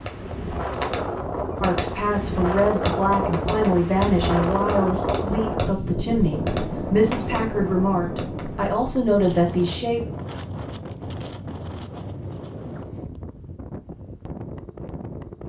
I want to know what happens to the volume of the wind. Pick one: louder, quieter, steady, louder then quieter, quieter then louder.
quieter.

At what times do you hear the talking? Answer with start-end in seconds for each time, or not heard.
1.6-10.0.